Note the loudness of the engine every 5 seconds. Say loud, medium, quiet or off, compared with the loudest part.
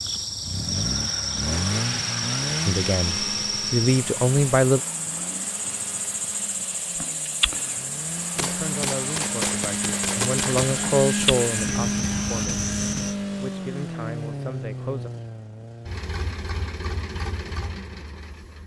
loud, medium, loud, medium.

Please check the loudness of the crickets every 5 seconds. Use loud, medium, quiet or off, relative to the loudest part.
loud, loud, loud, off.